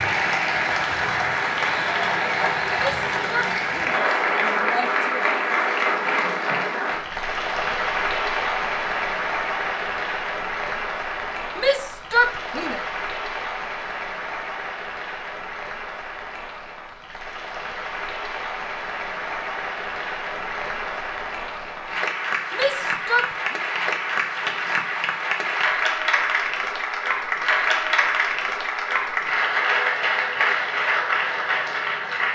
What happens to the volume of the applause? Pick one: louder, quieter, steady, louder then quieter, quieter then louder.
quieter then louder.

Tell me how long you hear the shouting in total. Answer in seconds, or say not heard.
5 s.